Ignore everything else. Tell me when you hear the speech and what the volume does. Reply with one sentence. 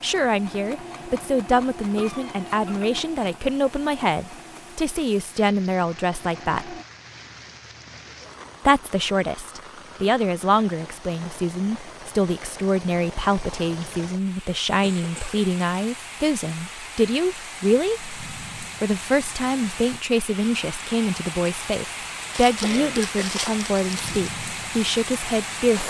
The speech can be heard from 0.0 to 6.8 s, at a steady volume; and from 8.7 to 25.8 s, at a steady volume.